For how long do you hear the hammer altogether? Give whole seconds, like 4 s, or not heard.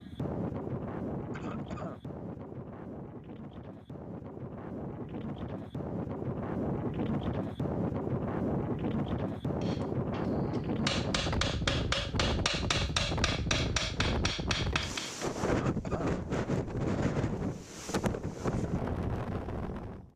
6 s.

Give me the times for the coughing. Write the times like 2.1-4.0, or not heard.
1.3-2.0, 15.4-16.1.